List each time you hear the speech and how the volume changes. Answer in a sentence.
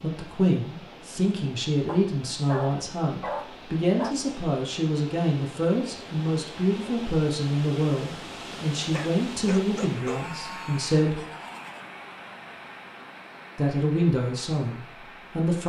You can hear the speech from 0.0 to 11.2 s, at a steady volume; and briefly from 13.6 to 15.6 s.